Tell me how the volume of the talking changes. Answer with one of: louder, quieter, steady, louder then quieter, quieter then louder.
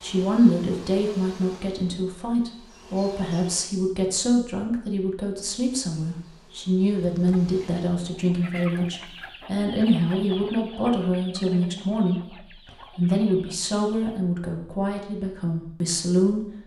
steady.